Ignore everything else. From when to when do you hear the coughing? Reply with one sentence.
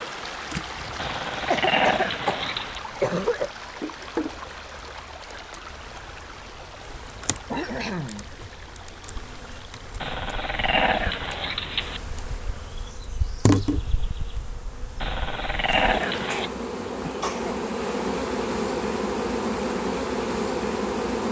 You can hear the coughing from 1.5 to 3.5 s, from 7.5 to 8.2 s and from 16.2 to 17.6 s.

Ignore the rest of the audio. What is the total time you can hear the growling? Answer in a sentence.
You can hear the growling for 5 seconds altogether.